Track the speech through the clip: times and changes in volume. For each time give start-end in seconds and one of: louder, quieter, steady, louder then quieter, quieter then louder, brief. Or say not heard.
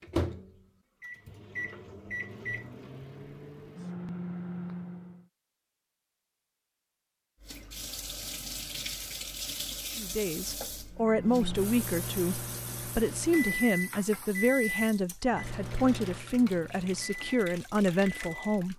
9.9-18.7 steady.